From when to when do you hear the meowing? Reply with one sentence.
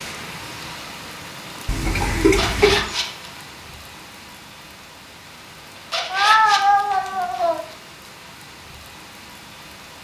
The meowing can be heard from 1.6 to 2.9 s and from 6.1 to 7.6 s.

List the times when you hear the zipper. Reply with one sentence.
You can hear the zipper from 2.2 to 3.4 s and from 5.8 to 7.5 s.